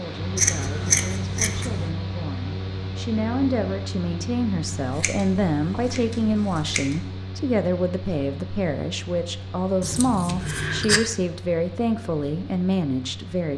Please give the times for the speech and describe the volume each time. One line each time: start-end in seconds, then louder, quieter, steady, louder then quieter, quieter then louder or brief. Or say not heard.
0.0-13.5 louder.